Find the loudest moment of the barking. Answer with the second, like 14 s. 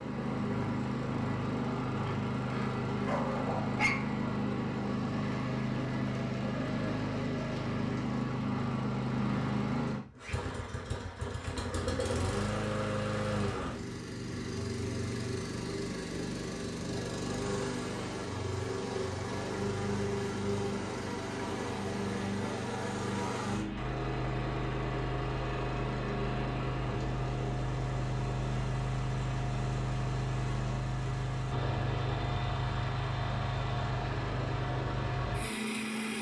4 s.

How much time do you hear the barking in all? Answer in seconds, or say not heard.
2 s.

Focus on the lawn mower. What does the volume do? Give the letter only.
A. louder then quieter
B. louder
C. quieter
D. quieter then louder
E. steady
E.